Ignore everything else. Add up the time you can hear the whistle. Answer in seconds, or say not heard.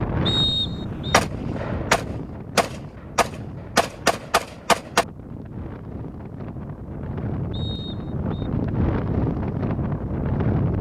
2 s.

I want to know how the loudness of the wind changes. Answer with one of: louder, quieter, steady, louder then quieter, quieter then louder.
quieter then louder.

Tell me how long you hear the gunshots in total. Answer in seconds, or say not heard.
4 s.